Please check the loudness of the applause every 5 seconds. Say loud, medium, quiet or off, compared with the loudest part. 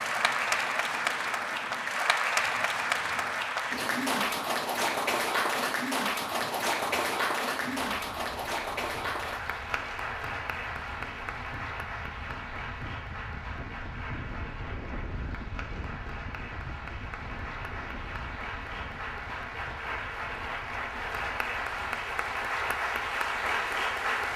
loud, loud, medium, medium, loud.